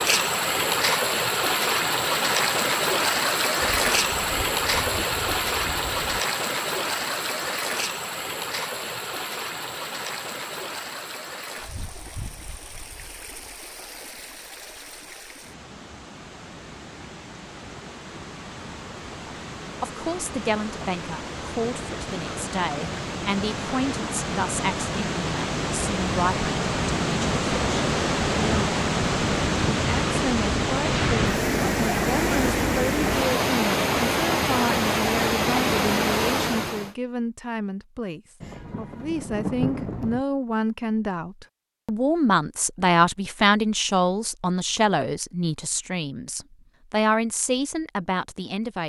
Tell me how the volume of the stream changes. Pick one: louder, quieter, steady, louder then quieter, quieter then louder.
quieter then louder.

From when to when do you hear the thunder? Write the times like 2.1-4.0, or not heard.
3.6-6.2, 38.4-40.2.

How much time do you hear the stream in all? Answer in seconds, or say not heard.
37 s.